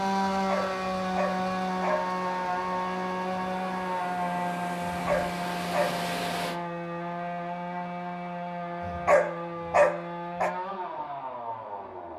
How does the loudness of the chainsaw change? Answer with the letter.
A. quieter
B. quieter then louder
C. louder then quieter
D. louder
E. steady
A.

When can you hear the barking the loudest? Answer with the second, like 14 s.
10 s.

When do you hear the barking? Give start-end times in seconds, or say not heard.
0.3-2.0, 4.9-6.0, 8.8-10.6.